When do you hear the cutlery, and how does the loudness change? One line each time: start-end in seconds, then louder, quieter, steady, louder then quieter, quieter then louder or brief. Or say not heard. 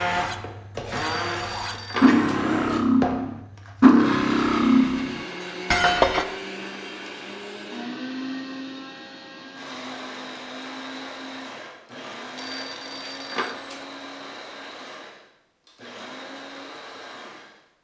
0.1-6.2 louder then quieter.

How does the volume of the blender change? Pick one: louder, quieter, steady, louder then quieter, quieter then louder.
quieter.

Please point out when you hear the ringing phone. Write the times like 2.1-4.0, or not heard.
0.9-2.2, 12.3-13.8.